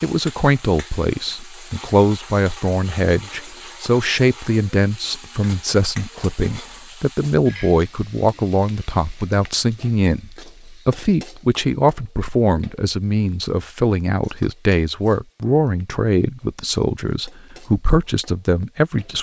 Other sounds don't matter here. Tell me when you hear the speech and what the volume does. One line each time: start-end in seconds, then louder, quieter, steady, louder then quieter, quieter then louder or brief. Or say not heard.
0.0-19.1 steady.